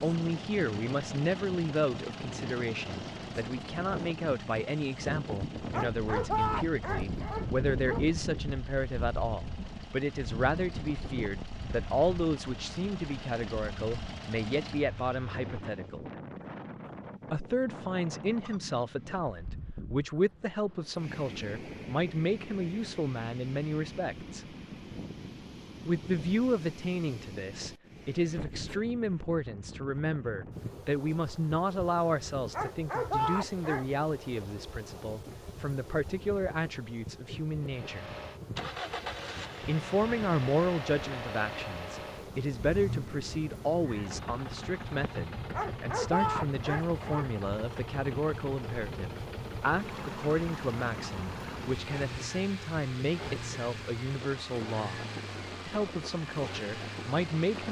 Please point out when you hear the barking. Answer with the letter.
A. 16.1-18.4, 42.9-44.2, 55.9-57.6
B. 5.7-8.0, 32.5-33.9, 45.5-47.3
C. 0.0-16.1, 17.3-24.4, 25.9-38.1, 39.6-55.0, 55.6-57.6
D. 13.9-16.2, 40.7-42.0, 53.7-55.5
B.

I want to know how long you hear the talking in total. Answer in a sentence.
You can hear the talking for 53 seconds altogether.